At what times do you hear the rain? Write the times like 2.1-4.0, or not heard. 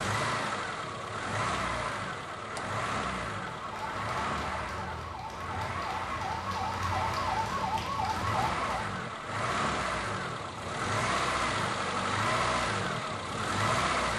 not heard.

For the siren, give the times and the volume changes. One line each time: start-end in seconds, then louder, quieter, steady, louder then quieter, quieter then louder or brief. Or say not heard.
3.5-8.9 louder.